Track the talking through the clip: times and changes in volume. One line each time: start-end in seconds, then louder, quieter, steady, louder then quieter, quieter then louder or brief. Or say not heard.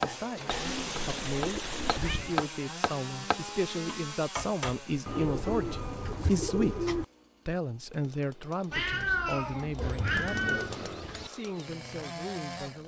0.0-12.8 louder then quieter.